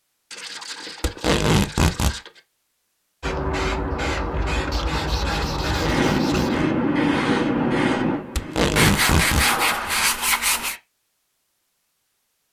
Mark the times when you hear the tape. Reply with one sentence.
You can hear the tape from 1.0 to 2.1 s, from 5.6 to 6.7 s and from 8.3 to 9.5 s.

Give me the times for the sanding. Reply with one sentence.
You can hear the sanding from 0.3 to 2.4 s, from 4.7 to 6.6 s and from 8.8 to 10.8 s.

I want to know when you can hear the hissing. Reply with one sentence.
The hissing can be heard from 3.2 to 10.8 s.